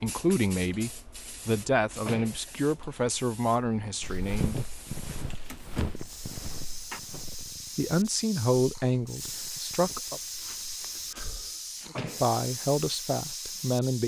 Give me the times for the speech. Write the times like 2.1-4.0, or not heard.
0.0-4.6, 7.8-10.2, 11.9-14.0.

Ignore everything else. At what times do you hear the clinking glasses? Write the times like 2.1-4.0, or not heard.
not heard.